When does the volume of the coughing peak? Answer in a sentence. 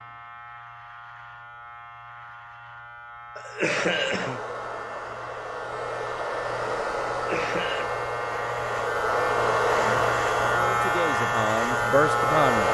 The volume of the coughing peaks at 4 seconds.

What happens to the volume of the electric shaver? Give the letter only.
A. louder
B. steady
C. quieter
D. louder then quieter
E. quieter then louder
A.